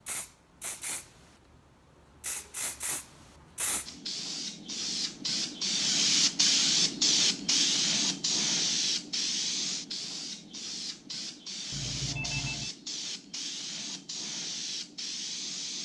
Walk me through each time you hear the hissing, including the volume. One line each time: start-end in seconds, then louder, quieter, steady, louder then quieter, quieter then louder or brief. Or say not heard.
0.1-15.8 louder then quieter.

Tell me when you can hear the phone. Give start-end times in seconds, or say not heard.
11.7-12.7.